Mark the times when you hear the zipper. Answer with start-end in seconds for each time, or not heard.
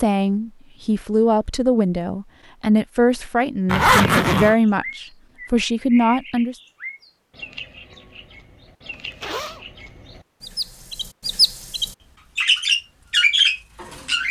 3.6-4.5, 8.9-9.7.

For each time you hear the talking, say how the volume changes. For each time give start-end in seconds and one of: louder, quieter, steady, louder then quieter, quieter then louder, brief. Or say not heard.
0.0-6.5 steady.